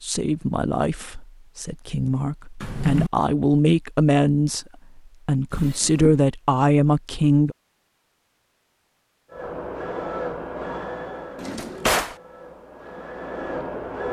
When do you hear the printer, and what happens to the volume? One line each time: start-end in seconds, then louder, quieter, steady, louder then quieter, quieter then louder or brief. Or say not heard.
9.3-14.0 quieter then louder.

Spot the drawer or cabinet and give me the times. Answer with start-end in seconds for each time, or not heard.
2.6-3.1, 5.5-6.2, 11.3-12.2.